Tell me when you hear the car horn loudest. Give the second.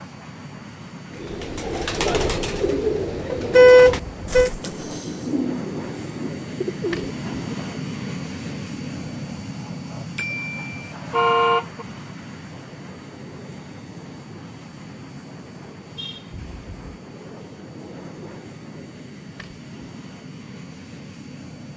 4 s.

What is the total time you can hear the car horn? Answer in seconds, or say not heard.
4 s.